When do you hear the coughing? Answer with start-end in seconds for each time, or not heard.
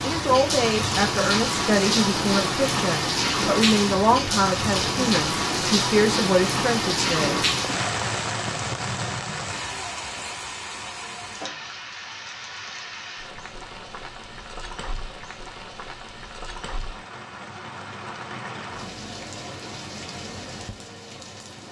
not heard.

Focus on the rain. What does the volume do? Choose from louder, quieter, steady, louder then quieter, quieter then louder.
quieter.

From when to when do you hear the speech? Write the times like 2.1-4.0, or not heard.
0.0-7.4.